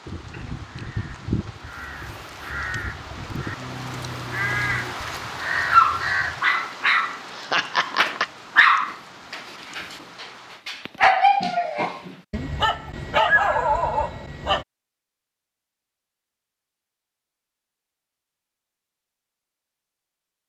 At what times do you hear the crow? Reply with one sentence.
You can hear the crow from 0.1 to 6.4 s.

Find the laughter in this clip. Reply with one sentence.
You can hear the laughter from 7.3 to 8.3 s.